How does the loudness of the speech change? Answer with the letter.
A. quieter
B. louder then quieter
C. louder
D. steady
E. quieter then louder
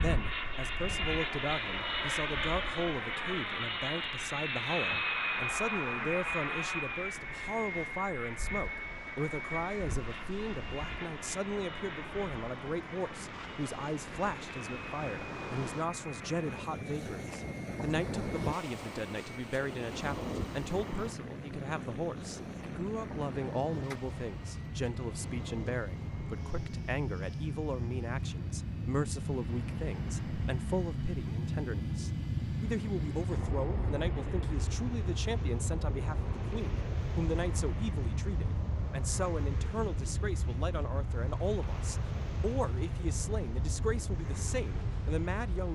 D.